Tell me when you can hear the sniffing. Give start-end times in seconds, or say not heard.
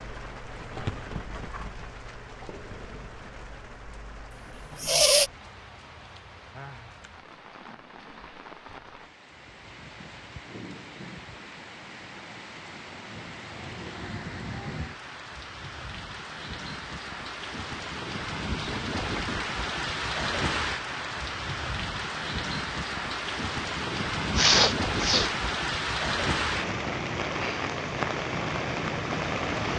4.7-5.3, 24.4-25.4.